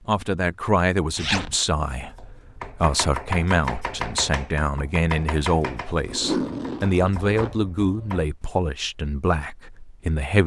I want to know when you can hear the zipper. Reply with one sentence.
You can hear the zipper from 1.1 to 1.6 s and from 6.0 to 7.5 s.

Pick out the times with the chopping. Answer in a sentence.
You can hear the chopping from 2.1 to 8.6 s.